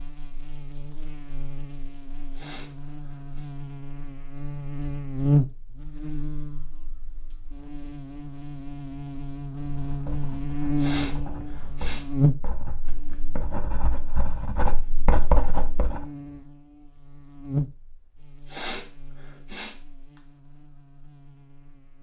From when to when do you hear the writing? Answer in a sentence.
The writing can be heard from 9.6 to 16.1 s.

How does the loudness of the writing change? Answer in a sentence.
The volume of the writing goes up.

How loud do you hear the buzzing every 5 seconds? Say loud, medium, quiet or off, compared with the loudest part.
medium, loud, loud, medium, quiet.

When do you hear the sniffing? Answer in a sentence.
The sniffing can be heard from 2.3 to 3.5 s, from 10.8 to 12.5 s and from 18.4 to 20.2 s.